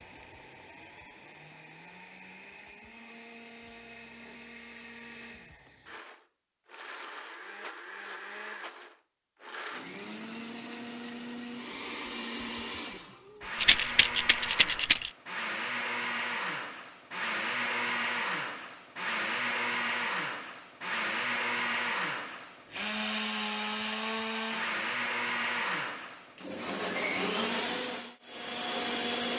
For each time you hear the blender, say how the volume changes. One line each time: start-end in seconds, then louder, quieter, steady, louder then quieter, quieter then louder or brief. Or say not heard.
0.0-29.3 louder.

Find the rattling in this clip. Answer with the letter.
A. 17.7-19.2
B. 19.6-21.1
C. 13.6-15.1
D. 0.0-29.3
C.